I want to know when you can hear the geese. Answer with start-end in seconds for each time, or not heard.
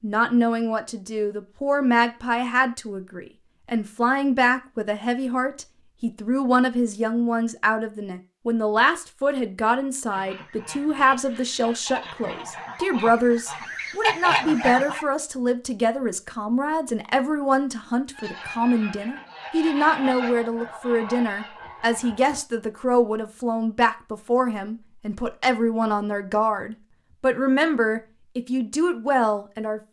10.1-15.1, 18.1-22.4.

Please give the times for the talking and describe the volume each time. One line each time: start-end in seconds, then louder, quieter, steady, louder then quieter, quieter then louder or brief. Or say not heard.
0.0-29.8 steady.